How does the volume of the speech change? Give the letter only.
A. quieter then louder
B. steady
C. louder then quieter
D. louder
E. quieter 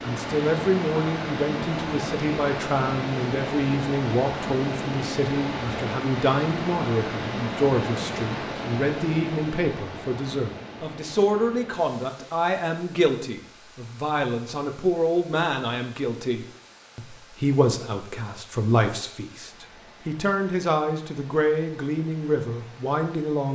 B.